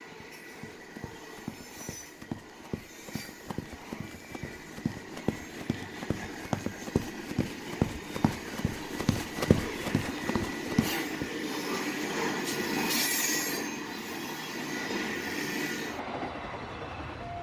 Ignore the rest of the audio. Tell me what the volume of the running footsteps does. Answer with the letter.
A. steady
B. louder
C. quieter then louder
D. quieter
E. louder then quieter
B.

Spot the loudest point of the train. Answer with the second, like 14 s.
13 s.